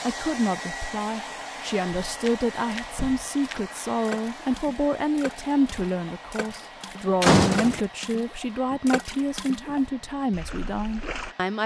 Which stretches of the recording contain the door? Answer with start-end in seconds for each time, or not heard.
1.9-3.7, 7.2-7.8.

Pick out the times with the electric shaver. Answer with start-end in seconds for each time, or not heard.
not heard.